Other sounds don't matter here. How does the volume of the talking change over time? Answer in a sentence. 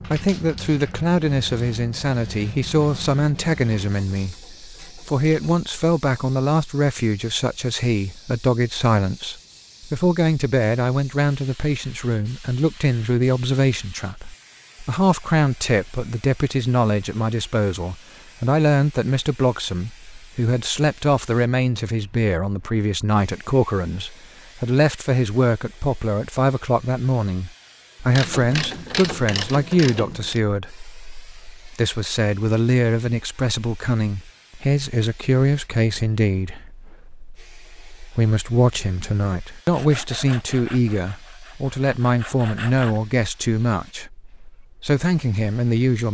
The loudness of the talking stays about the same.